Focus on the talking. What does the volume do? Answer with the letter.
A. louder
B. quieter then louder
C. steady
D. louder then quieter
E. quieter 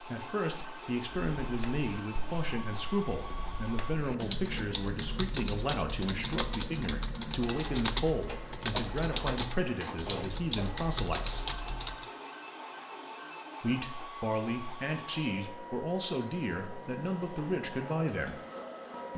C.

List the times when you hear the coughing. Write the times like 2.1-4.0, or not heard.
not heard.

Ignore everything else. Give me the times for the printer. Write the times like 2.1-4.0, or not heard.
0.0-19.1.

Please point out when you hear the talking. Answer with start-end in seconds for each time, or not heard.
0.0-11.4, 13.6-18.4.